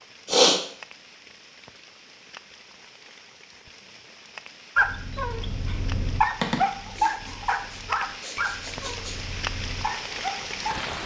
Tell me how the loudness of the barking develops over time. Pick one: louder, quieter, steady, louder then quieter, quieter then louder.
louder then quieter.